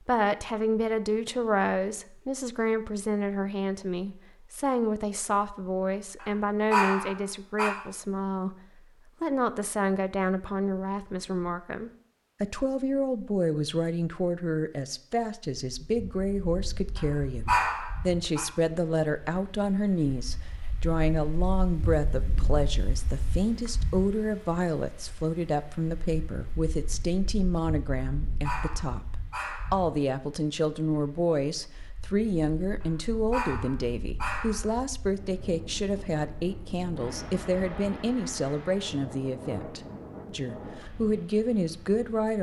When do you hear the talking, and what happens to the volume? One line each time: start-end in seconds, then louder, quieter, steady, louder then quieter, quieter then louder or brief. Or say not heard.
0.1-8.6 steady
9.2-42.3 steady.